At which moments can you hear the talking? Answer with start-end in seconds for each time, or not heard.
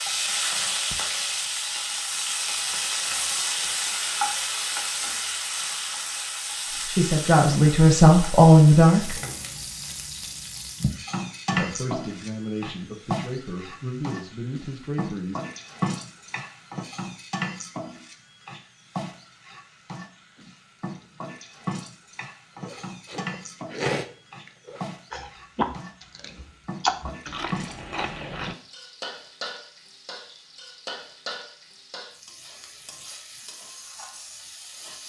6.8-9.2, 11.5-15.4.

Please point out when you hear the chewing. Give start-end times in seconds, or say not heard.
22.6-28.6.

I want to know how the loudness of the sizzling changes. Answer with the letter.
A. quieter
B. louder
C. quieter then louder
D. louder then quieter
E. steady
A.